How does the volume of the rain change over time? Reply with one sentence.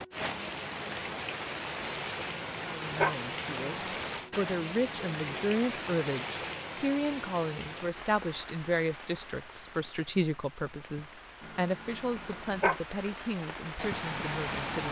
The loudness of the rain goes down, then up.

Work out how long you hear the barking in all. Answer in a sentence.
You can hear the barking for 3 seconds altogether.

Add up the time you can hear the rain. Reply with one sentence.
The rain can be heard for 15 seconds in total.